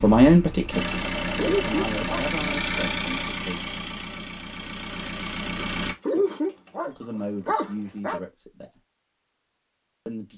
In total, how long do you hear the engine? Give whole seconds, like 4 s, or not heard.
6 s.